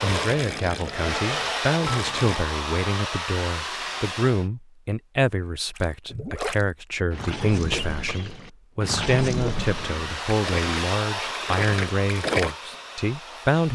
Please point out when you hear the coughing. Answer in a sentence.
The coughing can be heard from 7.7 to 8.3 s.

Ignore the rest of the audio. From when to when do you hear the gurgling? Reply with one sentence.
You can hear the gurgling from 0.0 to 2.5 s and from 5.8 to 12.6 s.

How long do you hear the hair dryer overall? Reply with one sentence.
The hair dryer can be heard for 9 seconds in total.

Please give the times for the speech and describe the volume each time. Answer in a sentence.
The speech can be heard from 0.0 to 13.7 s, at a steady volume.